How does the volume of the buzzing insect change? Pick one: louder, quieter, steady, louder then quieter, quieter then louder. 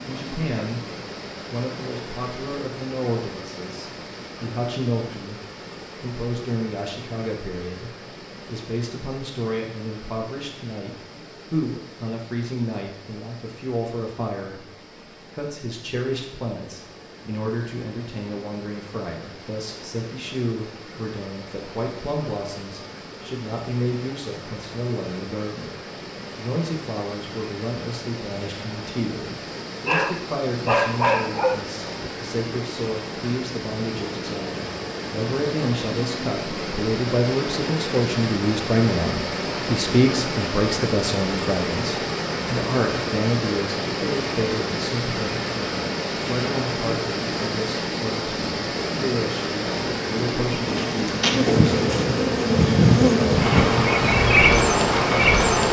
louder.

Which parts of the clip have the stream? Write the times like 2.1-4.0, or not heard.
0.0-55.6.